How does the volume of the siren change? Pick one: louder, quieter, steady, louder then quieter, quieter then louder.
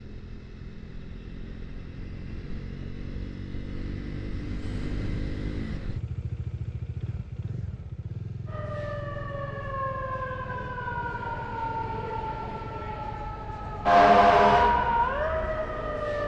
louder.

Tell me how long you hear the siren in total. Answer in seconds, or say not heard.
8 s.